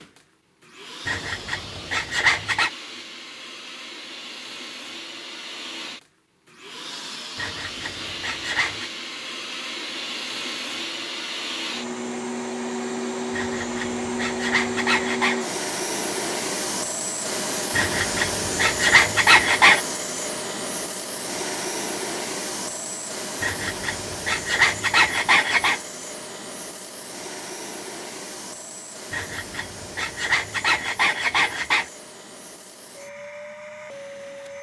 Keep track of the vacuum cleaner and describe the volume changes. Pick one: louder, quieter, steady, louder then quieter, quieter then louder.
louder then quieter.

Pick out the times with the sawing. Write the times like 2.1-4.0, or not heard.
1.1-2.7, 7.3-8.9, 13.3-15.4, 17.7-19.8, 23.4-25.8, 29.1-31.9.